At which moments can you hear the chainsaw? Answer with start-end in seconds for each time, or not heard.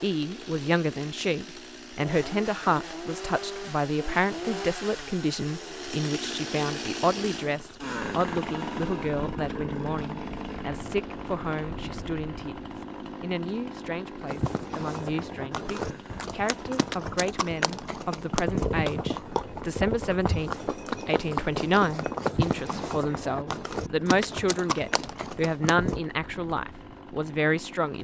0.0-27.9.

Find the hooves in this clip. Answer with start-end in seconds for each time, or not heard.
14.2-26.0.